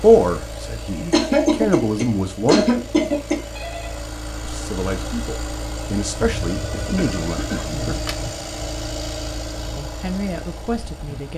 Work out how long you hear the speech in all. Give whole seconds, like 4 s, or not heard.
8 s.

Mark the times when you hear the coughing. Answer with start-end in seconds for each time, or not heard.
1.1-3.4, 6.2-8.0.